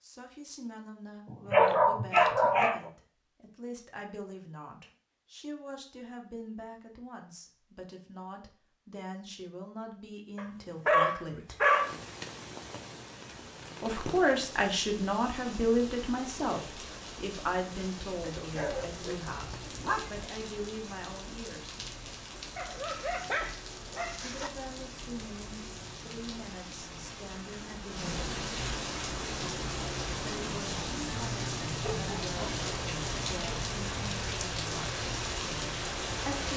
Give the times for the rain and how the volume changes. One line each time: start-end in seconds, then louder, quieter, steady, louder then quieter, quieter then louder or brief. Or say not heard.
11.7-36.5 louder.